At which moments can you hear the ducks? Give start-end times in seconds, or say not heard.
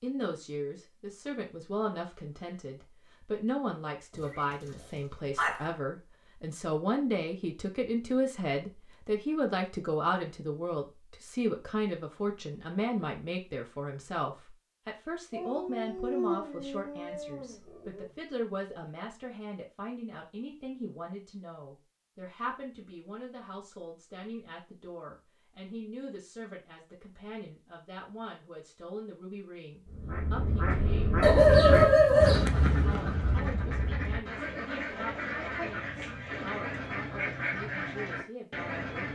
29.9-39.0.